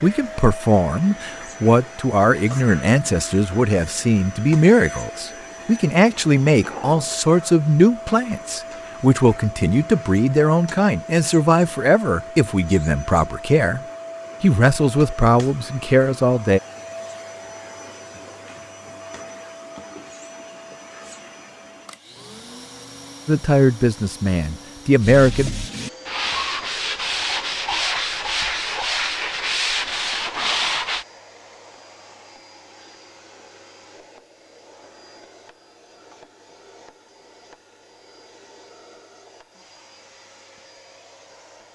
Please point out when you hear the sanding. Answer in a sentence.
You can hear the sanding from 25.0 to 31.1 s.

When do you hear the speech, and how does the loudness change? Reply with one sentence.
You can hear the speech from 0.0 to 13.8 s, at a steady volume; briefly from 14.4 to 16.6 s; and briefly from 23.2 to 25.5 s.